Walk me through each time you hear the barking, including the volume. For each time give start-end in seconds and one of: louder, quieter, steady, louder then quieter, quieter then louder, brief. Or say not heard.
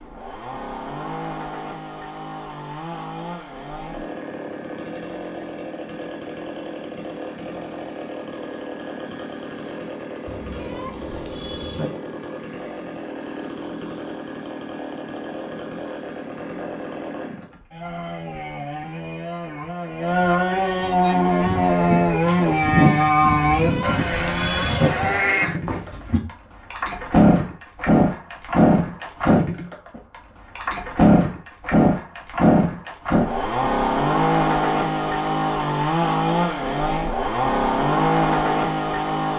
not heard.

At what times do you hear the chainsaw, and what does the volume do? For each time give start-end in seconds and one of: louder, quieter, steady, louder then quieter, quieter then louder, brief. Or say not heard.
0.0-39.3 louder.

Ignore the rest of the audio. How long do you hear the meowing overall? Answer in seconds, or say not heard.
3 s.